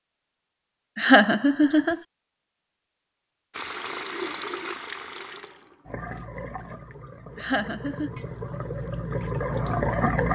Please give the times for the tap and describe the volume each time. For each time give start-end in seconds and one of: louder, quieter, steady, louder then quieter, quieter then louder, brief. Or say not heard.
3.5-10.3 quieter then louder.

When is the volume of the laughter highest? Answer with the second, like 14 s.
1 s.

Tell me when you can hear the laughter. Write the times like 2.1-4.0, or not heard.
0.9-2.0, 7.3-8.1.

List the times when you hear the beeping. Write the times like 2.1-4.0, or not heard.
not heard.